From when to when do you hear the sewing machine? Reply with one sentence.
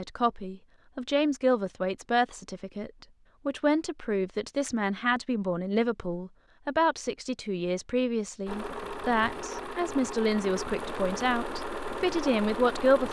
You can hear the sewing machine from 8.4 to 13.0 s.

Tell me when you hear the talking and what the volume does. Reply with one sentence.
You can hear the talking from 0.0 to 13.0 s, at a steady volume.